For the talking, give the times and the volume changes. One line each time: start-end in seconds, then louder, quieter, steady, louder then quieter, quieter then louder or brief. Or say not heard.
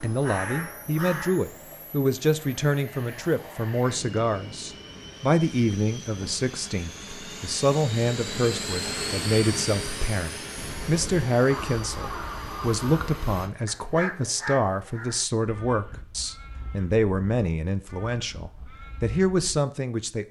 0.0-20.2 steady.